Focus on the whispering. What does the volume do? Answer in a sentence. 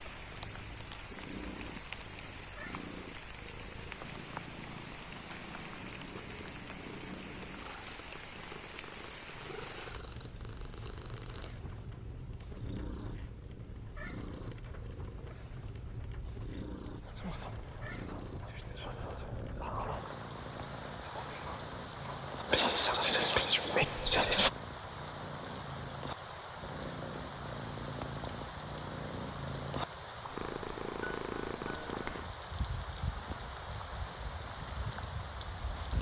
The volume of the whispering goes up.